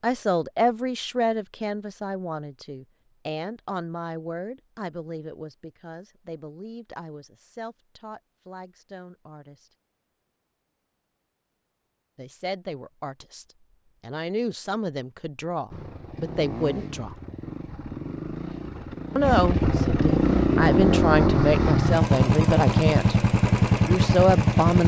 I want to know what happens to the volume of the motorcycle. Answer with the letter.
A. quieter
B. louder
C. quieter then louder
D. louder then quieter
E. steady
B.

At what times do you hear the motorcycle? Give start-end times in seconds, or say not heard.
15.7-24.8.